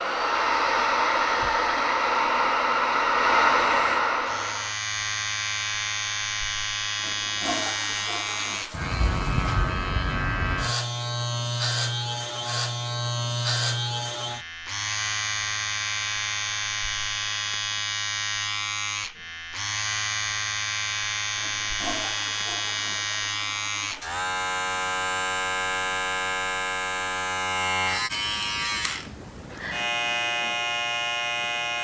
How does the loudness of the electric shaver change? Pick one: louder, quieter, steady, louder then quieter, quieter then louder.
steady.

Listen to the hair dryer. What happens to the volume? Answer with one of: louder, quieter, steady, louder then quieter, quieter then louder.
steady.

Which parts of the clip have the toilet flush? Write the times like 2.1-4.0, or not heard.
7.0-9.4, 21.4-24.1.